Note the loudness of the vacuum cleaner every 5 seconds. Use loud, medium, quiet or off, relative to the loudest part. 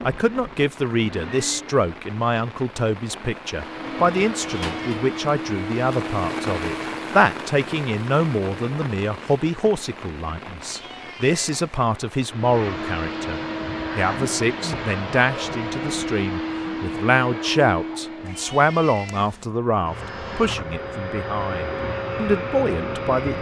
medium, loud, loud, loud, loud.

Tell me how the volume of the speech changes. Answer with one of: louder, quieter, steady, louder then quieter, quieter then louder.
steady.